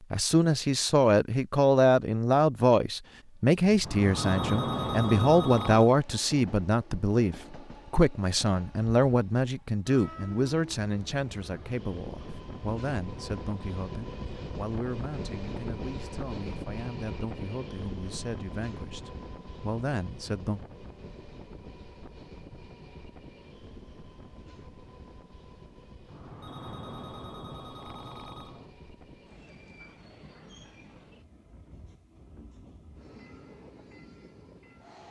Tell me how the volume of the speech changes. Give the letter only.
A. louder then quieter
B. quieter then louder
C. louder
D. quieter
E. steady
D.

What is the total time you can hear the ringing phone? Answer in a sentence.
You can hear the ringing phone for 5 seconds altogether.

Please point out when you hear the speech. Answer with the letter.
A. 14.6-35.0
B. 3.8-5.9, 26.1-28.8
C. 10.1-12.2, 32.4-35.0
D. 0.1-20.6
D.